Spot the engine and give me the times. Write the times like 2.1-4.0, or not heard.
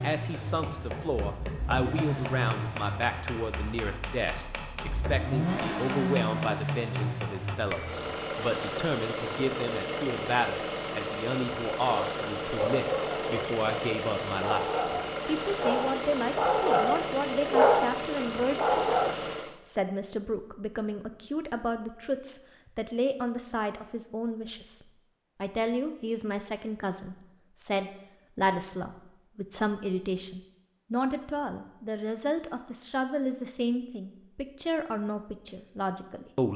0.0-19.6.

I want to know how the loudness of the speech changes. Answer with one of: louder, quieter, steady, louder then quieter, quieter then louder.
steady.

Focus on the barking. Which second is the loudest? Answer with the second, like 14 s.
18 s.